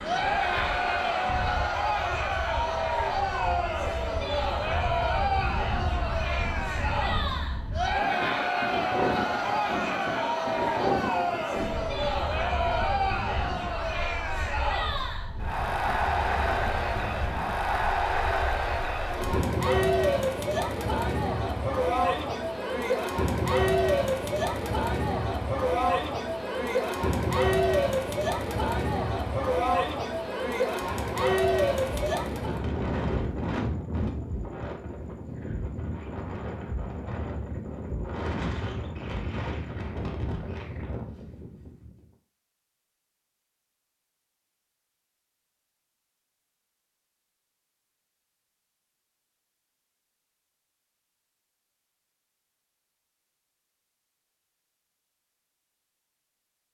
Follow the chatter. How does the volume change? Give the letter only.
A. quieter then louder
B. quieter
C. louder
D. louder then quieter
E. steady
E.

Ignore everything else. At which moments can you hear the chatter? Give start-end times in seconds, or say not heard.
0.0-32.6.